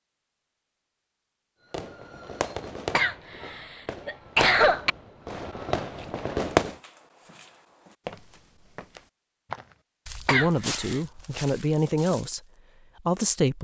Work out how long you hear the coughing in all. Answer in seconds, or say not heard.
3 s.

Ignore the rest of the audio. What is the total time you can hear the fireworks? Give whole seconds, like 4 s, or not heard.
5 s.